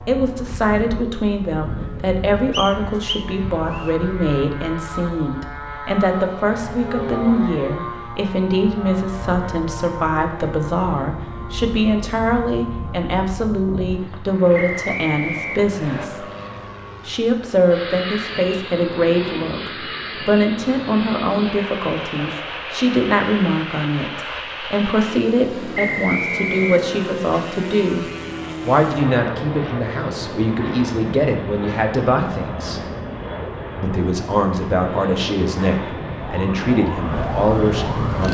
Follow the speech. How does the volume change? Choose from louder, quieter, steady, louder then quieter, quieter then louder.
steady.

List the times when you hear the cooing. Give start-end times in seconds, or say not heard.
not heard.